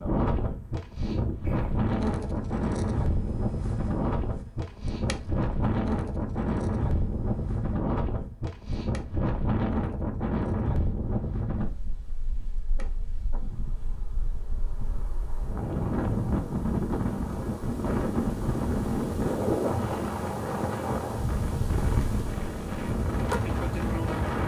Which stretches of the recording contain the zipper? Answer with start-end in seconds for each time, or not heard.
not heard.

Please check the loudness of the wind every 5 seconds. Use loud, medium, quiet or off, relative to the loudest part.
loud, loud, medium, loud, loud.